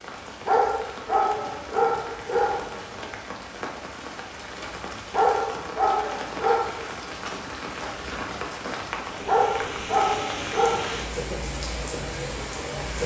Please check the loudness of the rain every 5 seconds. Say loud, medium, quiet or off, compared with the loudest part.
medium, loud, loud.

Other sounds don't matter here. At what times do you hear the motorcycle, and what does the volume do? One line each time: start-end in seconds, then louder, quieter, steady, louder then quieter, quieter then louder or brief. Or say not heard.
not heard.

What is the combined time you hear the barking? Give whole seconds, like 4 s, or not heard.
6 s.